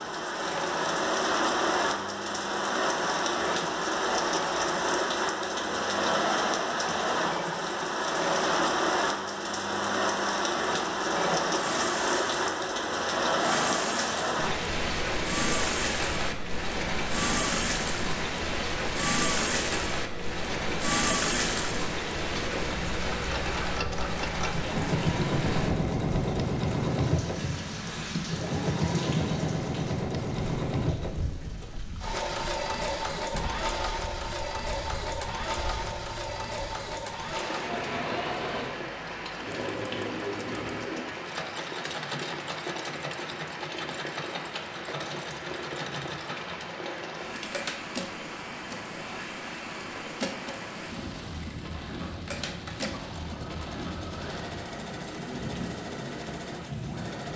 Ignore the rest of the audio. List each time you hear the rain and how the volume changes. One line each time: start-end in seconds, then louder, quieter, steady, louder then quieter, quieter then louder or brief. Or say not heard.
0.0-57.3 quieter.